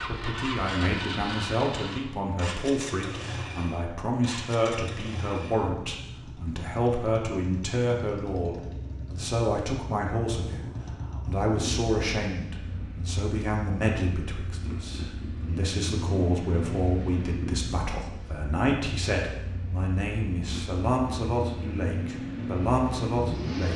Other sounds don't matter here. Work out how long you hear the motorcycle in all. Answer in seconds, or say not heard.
24 s.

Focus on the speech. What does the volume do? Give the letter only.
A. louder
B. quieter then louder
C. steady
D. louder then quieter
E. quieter
C.